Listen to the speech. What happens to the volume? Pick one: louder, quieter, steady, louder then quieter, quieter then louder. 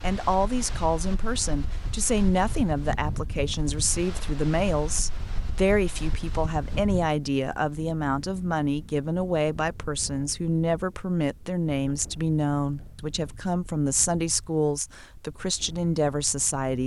steady.